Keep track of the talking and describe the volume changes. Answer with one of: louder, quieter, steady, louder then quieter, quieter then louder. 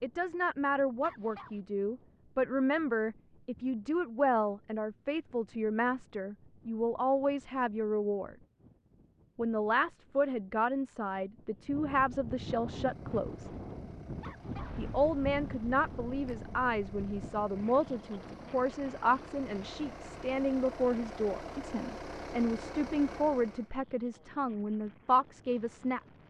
steady.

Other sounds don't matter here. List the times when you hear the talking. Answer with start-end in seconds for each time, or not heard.
0.0-8.3, 9.3-13.5, 14.8-26.0.